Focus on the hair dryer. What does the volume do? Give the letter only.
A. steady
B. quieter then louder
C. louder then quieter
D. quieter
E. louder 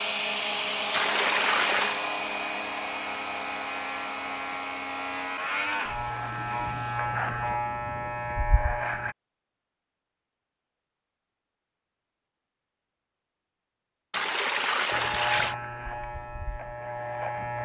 D.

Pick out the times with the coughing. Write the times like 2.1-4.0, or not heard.
not heard.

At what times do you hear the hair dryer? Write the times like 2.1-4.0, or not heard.
0.0-7.0.